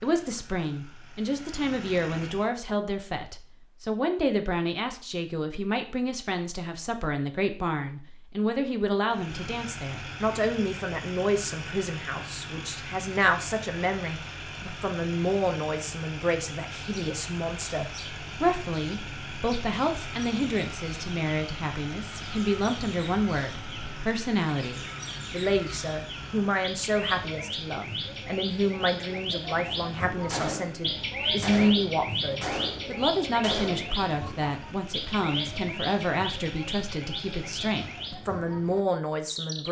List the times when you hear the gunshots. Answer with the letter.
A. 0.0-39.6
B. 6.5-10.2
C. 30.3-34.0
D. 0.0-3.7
C.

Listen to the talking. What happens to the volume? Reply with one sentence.
The volume of the talking stays about the same.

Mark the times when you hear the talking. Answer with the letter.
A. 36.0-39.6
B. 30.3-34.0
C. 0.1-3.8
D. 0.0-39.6
D.